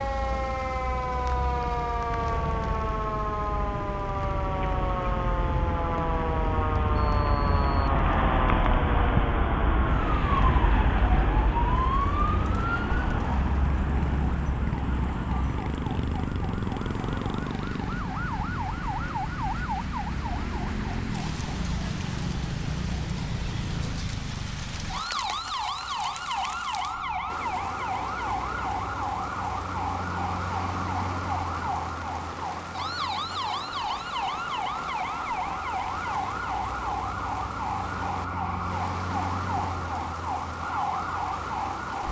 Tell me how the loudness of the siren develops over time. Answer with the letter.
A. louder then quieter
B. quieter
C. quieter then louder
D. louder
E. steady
E.